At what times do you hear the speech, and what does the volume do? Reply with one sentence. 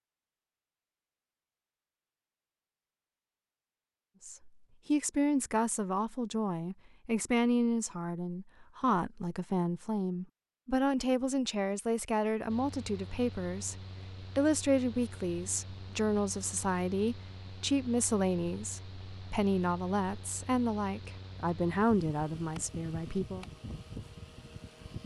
The speech can be heard from 4.2 to 23.4 s, at a steady volume.